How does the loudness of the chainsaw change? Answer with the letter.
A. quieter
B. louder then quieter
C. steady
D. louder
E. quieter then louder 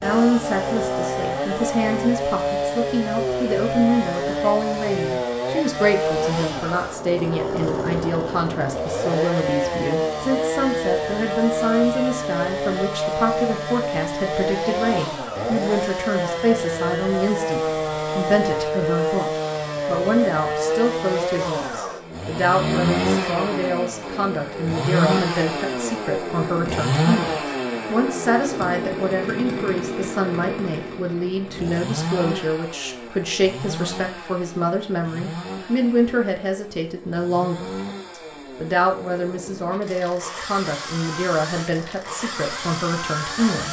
A.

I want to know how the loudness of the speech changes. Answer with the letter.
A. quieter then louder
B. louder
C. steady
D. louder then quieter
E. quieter
C.